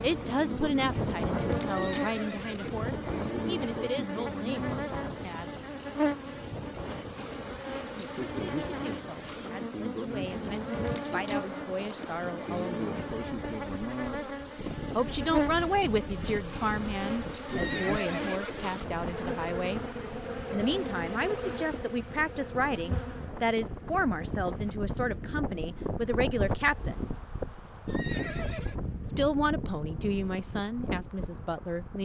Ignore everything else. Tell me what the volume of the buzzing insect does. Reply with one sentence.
The loudness of the buzzing insect goes down.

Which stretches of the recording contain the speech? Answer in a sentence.
The speech can be heard from 0.0 to 5.5 s, from 8.0 to 13.0 s, from 14.9 to 19.8 s, from 20.5 to 27.1 s and from 29.1 to 32.0 s.